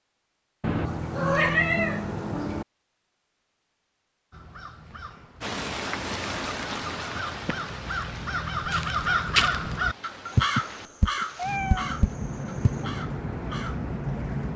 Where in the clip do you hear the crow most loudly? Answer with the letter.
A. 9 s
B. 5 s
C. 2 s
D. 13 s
A.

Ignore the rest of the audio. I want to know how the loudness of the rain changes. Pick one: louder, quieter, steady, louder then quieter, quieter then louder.
quieter then louder.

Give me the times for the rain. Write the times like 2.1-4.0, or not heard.
5.4-14.5.